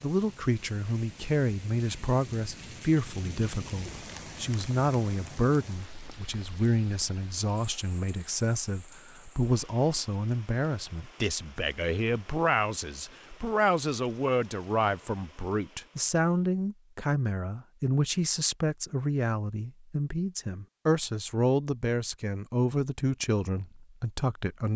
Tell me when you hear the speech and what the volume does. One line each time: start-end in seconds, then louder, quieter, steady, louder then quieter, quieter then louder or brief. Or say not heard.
0.0-24.7 steady.